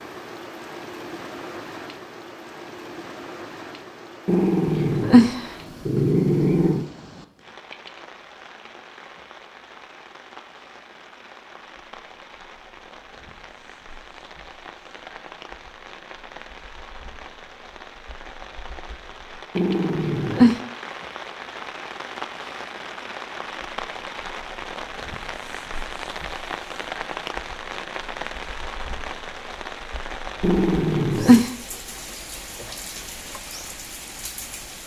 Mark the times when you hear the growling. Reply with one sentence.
The growling can be heard from 4.2 to 6.8 s, from 19.6 to 20.6 s and from 30.4 to 31.5 s.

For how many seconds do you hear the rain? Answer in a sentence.
You can hear the rain for 35 seconds altogether.